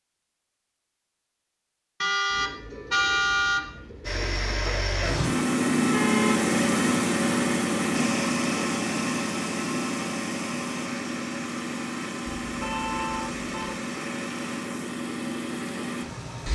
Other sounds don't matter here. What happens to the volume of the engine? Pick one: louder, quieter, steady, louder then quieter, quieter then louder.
quieter.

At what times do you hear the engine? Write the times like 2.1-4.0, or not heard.
4.0-16.5.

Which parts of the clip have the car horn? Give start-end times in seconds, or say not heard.
2.0-3.6, 5.8-6.4, 12.4-13.8.